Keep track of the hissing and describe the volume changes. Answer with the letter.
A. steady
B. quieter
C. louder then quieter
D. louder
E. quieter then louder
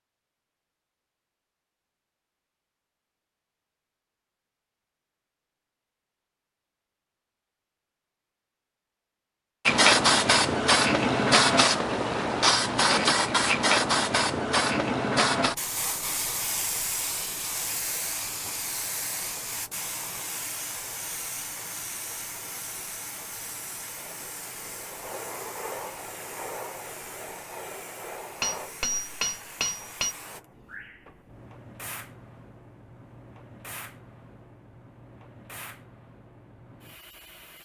B.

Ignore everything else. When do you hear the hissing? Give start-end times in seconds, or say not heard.
9.7-37.6.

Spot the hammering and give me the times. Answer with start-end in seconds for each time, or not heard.
28.4-30.1.